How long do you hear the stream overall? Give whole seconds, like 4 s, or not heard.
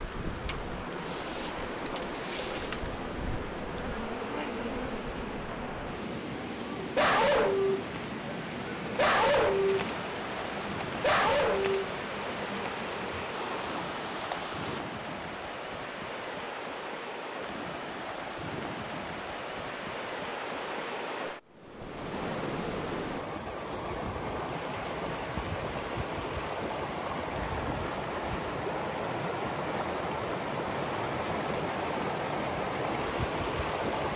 34 s.